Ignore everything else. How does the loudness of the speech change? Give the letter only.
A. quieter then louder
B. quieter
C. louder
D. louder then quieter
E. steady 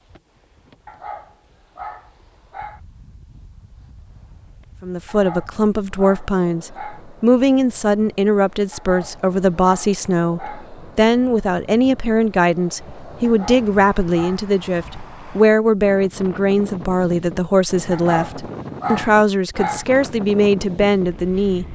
E.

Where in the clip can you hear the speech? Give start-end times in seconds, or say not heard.
4.8-21.7.